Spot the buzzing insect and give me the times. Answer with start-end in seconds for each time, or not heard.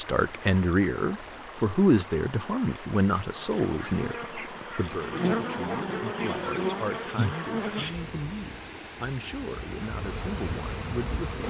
3.3-11.4.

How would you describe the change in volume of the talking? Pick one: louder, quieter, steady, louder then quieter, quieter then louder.
quieter.